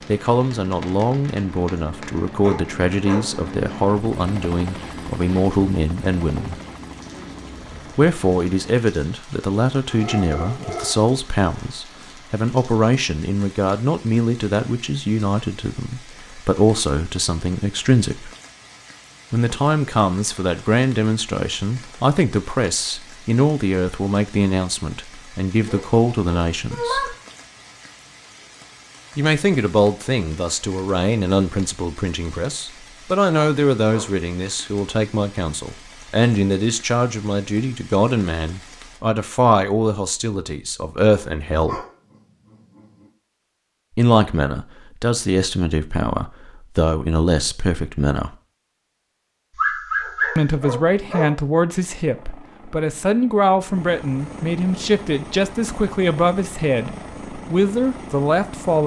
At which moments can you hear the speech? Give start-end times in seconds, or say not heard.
0.1-6.6, 8.0-18.3, 19.3-27.1, 29.1-41.9, 44.0-48.4, 50.4-58.8.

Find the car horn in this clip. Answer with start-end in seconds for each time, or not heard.
not heard.